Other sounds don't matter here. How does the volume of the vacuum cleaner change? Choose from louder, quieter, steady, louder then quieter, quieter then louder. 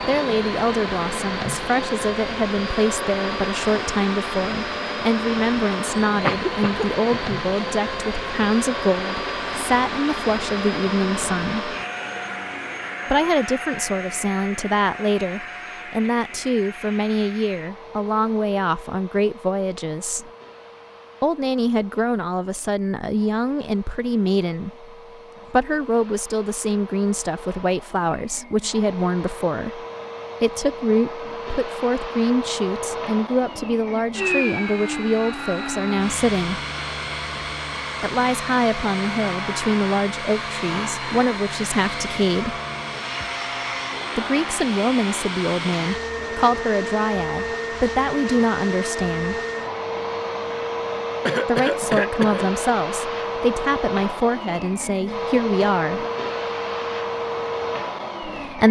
quieter then louder.